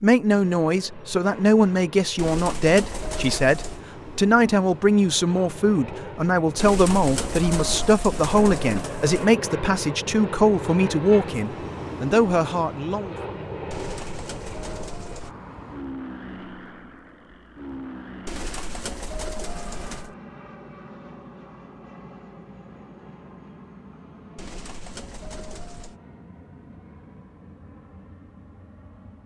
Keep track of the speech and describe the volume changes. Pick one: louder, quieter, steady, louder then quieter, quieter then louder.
steady.